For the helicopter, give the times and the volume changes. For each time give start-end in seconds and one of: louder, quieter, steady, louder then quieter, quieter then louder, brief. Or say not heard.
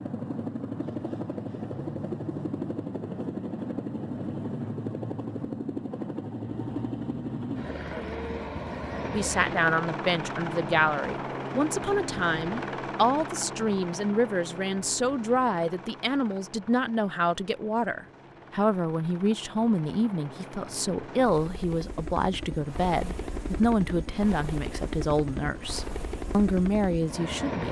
0.0-27.6 quieter then louder.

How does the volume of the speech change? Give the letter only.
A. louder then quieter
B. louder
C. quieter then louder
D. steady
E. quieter
D.